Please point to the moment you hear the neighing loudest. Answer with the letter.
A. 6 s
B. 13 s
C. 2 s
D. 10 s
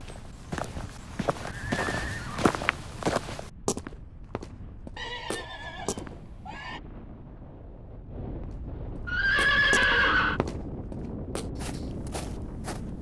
D.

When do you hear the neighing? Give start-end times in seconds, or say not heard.
0.6-2.5, 5.0-6.8, 9.1-10.4.